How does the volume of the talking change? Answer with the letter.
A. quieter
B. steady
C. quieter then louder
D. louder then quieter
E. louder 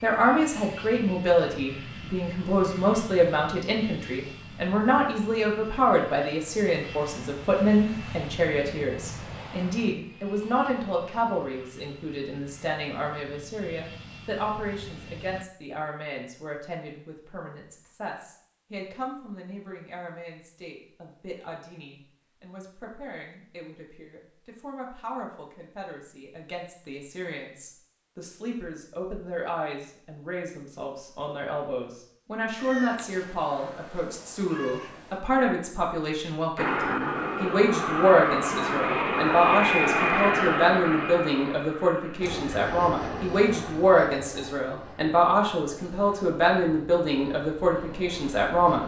C.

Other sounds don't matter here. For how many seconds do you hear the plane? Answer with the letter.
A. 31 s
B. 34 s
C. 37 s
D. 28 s
D.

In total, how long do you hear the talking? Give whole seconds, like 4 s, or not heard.
49 s.